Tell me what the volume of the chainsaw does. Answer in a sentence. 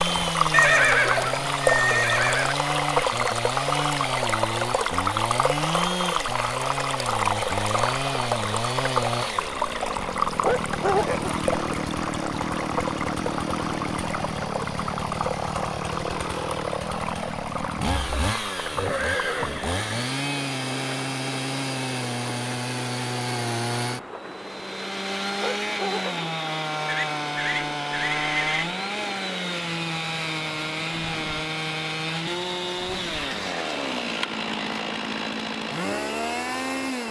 The volume of the chainsaw stays about the same.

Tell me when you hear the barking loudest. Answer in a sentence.
The loudest moment of the barking is at 11 seconds.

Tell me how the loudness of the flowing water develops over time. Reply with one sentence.
The loudness of the flowing water goes down.